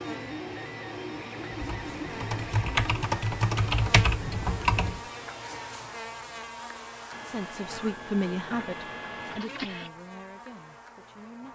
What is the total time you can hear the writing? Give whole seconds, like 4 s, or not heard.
not heard.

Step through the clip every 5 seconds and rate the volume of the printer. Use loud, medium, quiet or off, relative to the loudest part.
loud, loud, off.